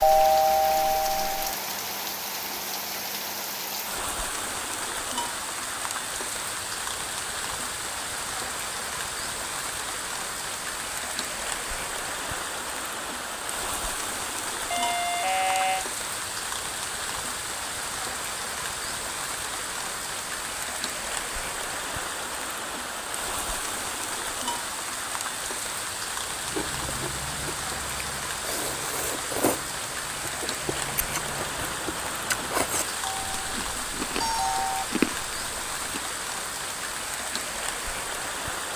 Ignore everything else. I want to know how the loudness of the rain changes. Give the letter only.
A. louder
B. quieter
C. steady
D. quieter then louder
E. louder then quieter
C.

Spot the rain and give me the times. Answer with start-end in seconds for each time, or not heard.
0.0-38.7.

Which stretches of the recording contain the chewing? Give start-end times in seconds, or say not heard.
26.4-36.0.